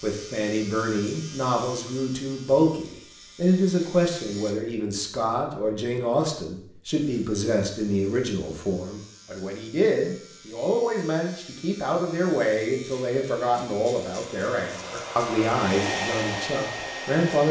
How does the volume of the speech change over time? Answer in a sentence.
The loudness of the speech stays about the same.